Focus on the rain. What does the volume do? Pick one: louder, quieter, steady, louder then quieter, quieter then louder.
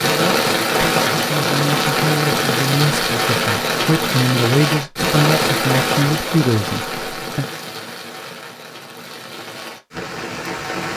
quieter.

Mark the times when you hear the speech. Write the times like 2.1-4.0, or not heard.
0.0-7.5.